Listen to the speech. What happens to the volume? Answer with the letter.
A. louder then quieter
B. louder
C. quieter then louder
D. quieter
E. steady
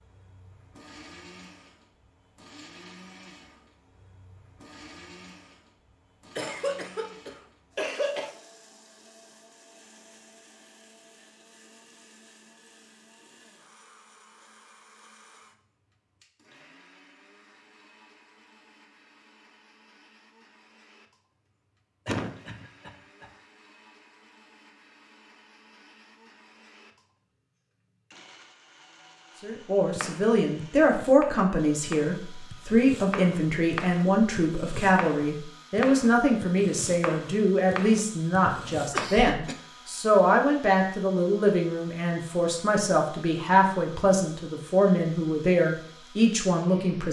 E.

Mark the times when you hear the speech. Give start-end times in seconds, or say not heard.
29.4-47.0.